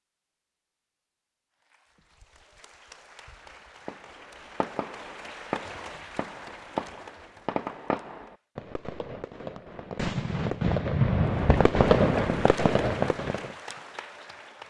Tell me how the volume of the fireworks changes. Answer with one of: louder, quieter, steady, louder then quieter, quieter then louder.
louder.